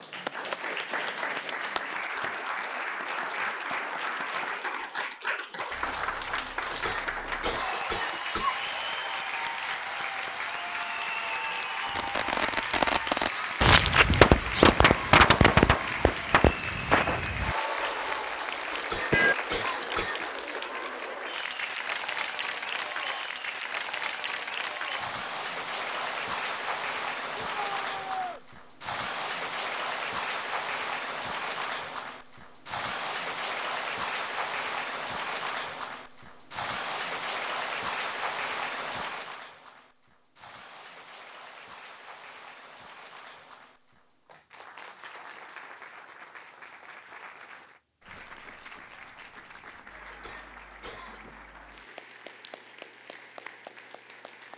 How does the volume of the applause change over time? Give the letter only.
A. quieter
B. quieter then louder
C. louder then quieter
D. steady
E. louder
A.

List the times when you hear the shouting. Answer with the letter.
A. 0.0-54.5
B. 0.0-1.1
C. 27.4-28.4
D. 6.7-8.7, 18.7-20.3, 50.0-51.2
C.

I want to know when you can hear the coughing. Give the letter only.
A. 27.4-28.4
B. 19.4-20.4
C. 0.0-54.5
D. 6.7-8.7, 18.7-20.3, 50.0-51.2
D.